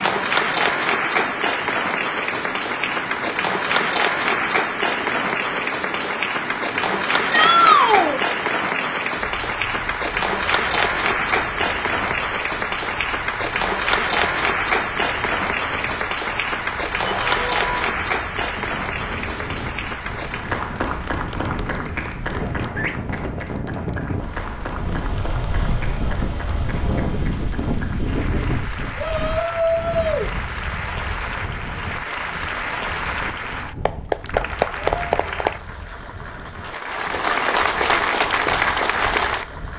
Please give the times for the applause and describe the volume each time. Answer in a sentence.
The applause can be heard from 0.0 to 39.7 s, getting quieter then louder.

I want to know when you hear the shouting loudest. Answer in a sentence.
The loudest moment of the shouting is at 8 seconds.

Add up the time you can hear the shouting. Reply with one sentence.
The shouting can be heard for 3 seconds in total.